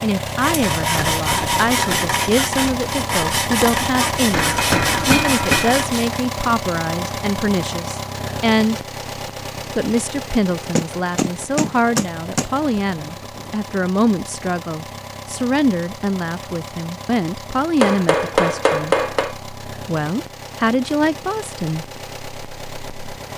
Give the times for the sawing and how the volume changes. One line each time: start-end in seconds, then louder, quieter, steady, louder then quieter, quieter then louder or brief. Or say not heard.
0.2-6.2 steady.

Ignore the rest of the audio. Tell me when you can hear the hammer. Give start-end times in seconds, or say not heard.
4.3-5.8, 10.8-12.4, 17.8-19.4.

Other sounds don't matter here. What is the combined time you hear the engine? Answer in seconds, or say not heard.
23 s.